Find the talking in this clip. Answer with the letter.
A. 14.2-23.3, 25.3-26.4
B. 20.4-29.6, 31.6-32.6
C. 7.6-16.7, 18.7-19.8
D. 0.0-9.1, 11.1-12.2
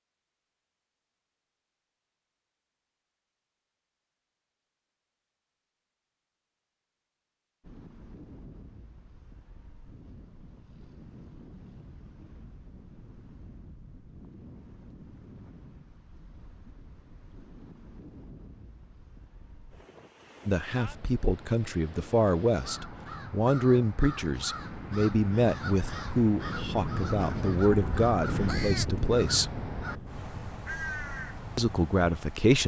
B.